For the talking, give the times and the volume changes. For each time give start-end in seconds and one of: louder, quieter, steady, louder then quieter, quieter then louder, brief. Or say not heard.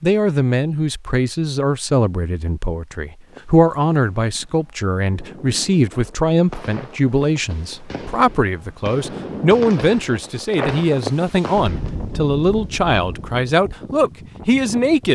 0.0-15.1 steady.